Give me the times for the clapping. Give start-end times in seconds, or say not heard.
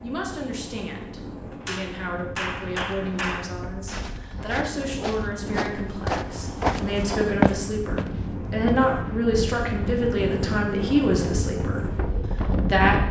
1.6-3.5.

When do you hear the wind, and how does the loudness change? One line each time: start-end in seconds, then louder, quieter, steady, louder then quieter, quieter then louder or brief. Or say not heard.
0.0-13.0 louder.